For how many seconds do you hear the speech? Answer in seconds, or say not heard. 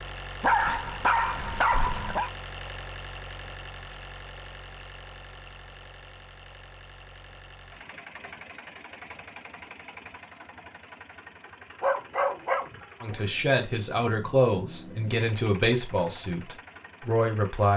5 s.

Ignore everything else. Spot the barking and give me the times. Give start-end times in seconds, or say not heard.
0.4-2.3, 11.8-13.2.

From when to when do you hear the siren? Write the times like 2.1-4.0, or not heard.
not heard.